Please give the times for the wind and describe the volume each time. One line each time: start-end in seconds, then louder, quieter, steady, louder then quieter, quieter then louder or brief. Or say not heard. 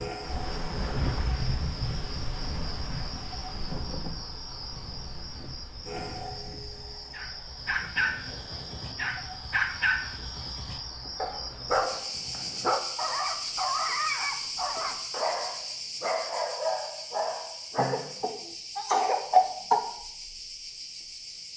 0.0-11.8 quieter.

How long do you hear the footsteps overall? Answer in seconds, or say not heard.
not heard.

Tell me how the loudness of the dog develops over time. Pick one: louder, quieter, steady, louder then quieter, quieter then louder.
steady.